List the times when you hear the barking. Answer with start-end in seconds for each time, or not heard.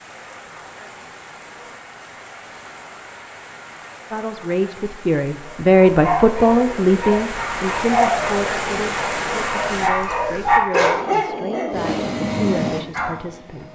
5.7-13.2.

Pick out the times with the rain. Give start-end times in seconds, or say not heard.
0.0-9.9.